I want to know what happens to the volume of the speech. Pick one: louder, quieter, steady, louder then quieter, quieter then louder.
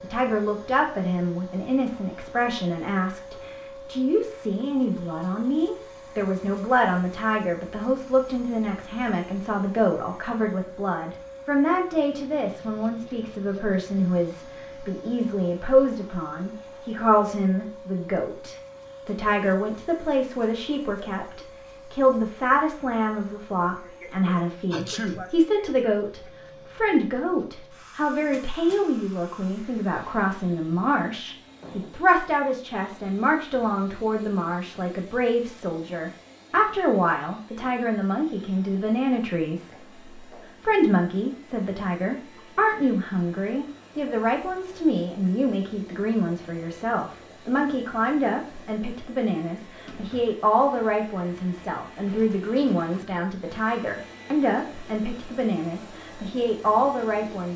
steady.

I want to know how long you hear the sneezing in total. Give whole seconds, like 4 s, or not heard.
2 s.